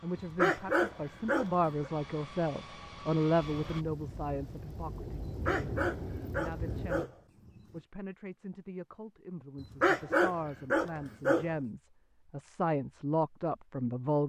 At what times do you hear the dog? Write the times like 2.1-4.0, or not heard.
0.1-1.9, 5.2-7.8, 9.6-11.6.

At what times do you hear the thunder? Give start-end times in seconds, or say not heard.
3.6-7.0.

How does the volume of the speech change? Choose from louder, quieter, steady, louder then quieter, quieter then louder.
quieter then louder.